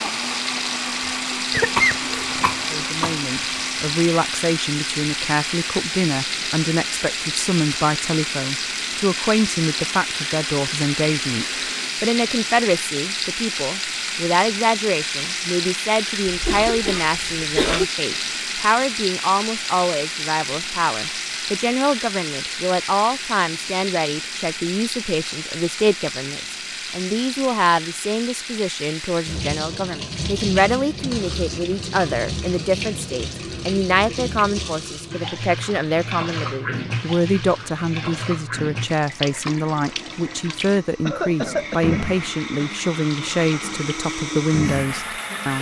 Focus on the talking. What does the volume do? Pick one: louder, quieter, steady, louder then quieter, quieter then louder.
steady.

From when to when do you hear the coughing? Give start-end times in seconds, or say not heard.
1.5-3.1, 16.2-17.9, 41.0-42.0.